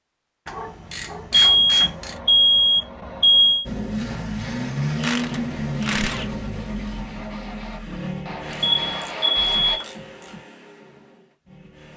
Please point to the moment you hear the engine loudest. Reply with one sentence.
The loudest moment of the engine is at 5 seconds.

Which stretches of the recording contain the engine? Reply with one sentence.
You can hear the engine from 3.6 to 11.9 s.